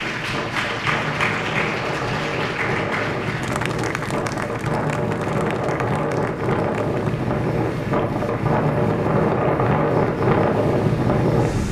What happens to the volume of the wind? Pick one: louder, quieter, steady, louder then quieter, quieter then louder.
louder.